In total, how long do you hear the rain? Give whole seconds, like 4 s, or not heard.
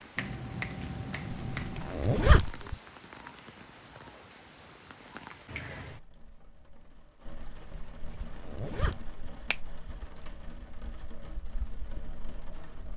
13 s.